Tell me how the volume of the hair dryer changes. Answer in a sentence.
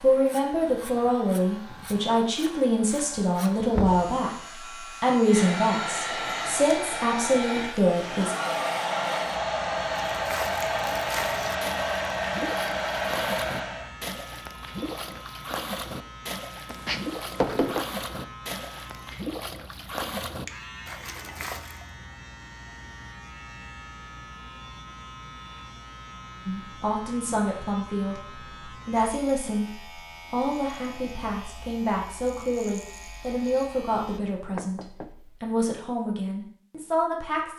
The loudness of the hair dryer goes up.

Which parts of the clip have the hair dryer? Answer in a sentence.
The hair dryer can be heard from 0.0 to 13.9 s.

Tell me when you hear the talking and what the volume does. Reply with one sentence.
The talking can be heard from 0.0 to 8.3 s, at a steady volume; and from 26.4 to 37.5 s, at a steady volume.